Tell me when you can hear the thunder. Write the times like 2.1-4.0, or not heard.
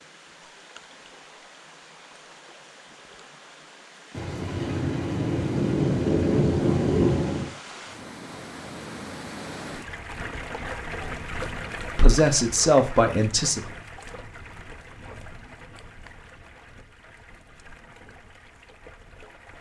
4.1-7.5.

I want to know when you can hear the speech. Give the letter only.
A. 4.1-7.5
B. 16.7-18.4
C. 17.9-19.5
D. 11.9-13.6
D.